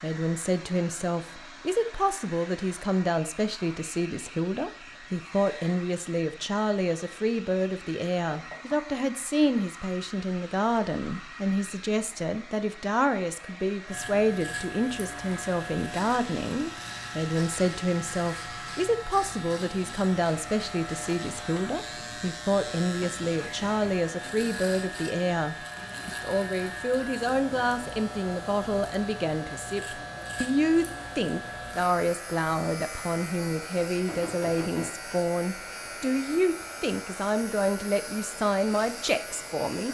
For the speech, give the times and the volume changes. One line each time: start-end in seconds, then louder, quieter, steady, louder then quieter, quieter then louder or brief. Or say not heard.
0.0-39.8 steady.